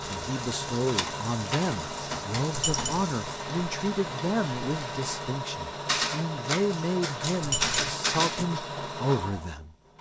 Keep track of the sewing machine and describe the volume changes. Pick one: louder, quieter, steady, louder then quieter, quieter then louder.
steady.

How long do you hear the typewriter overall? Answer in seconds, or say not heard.
5 s.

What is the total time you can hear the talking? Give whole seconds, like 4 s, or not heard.
10 s.